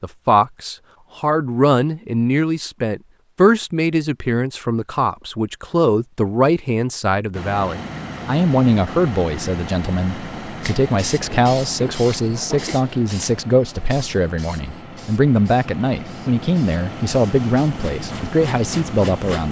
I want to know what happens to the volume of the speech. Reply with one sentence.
The loudness of the speech stays about the same.